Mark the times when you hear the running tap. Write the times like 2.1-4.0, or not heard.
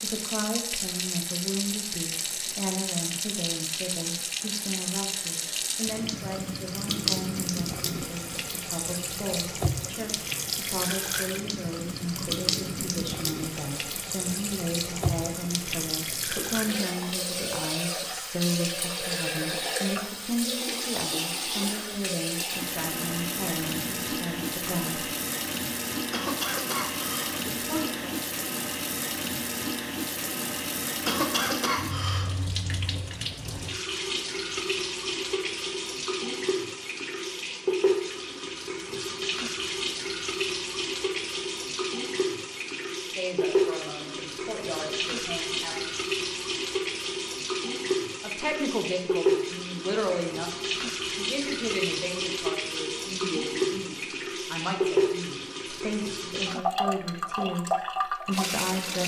0.0-59.0.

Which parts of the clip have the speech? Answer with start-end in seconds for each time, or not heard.
0.0-25.1, 27.5-28.1, 43.0-45.8, 48.2-50.5, 51.1-59.0.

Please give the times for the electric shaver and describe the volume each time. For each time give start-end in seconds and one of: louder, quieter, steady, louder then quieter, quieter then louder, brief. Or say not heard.
not heard.